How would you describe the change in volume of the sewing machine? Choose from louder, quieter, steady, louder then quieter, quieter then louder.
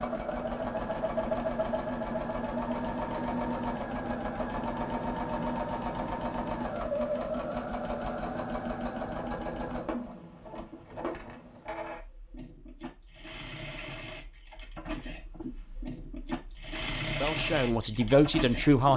quieter then louder.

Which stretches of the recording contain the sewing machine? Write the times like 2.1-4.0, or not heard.
0.0-18.9.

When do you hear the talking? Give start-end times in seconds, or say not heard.
17.2-18.9.